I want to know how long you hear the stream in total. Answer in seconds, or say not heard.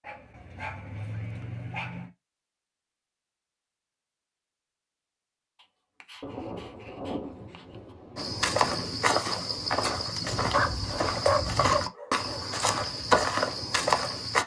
not heard.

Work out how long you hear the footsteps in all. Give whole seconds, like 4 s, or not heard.
6 s.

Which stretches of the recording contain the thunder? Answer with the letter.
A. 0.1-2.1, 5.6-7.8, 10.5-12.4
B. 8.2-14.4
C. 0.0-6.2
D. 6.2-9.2
D.